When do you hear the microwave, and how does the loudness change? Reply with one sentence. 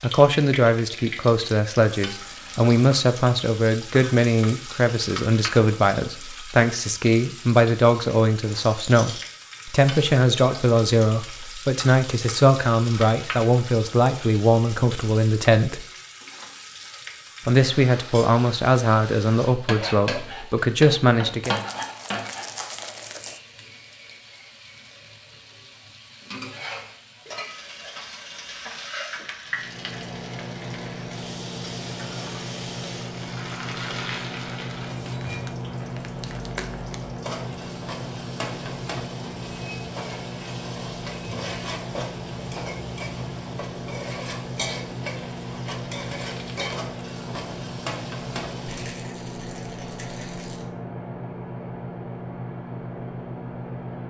You can hear the microwave from 29.4 to 54.0 s, at a steady volume.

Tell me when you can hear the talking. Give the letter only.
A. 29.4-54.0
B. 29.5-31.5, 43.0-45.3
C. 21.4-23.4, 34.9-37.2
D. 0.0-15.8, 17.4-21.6
D.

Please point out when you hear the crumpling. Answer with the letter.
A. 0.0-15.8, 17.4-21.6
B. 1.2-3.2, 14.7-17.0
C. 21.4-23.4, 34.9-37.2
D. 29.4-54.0
C.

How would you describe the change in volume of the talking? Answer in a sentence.
The loudness of the talking stays about the same.